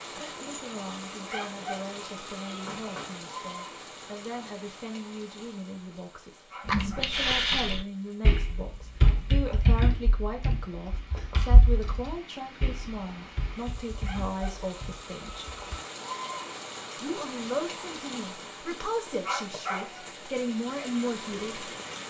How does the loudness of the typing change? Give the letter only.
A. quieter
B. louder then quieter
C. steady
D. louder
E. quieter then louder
A.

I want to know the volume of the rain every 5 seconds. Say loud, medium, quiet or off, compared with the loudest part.
loud, quiet, medium, loud, loud.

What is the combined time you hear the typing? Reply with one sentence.
The typing can be heard for 9 seconds in total.